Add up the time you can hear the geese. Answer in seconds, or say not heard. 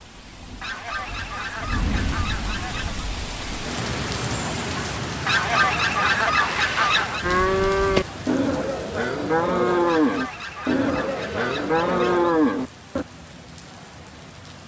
7 s.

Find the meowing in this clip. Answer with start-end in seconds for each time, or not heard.
not heard.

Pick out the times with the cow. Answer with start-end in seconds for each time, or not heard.
7.2-13.1.